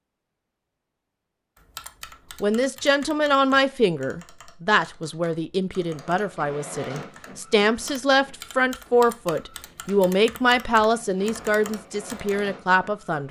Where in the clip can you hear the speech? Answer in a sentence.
You can hear the speech from 2.4 to 13.2 s.